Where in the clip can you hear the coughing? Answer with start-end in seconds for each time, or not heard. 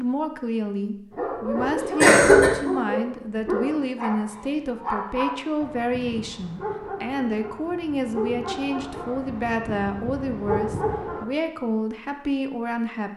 2.0-2.5.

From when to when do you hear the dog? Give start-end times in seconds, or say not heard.
1.1-11.2.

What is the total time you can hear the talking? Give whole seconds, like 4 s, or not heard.
13 s.